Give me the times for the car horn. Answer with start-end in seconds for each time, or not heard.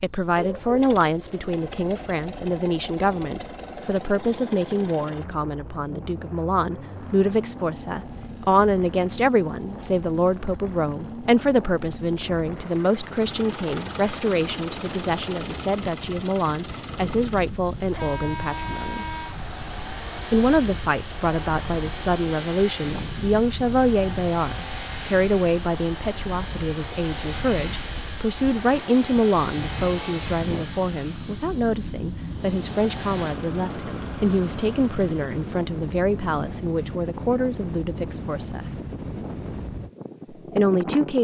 17.9-19.4.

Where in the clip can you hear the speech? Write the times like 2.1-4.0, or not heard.
0.0-19.1, 20.3-38.7, 40.5-41.2.